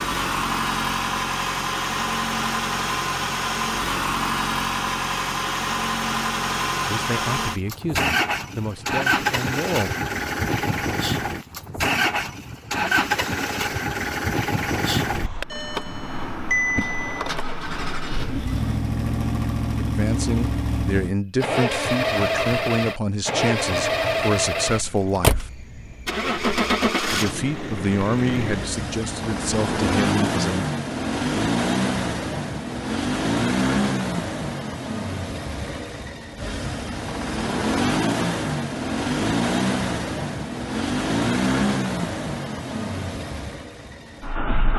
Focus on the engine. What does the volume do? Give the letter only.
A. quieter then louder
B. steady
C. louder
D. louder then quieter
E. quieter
B.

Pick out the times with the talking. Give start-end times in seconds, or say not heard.
6.8-9.9, 19.8-25.5, 27.1-30.6.